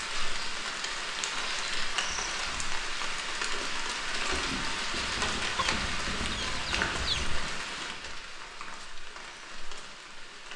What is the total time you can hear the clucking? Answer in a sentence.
The clucking can be heard for 2 seconds in total.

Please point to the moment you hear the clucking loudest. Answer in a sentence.
The volume of the clucking peaks at 7 seconds.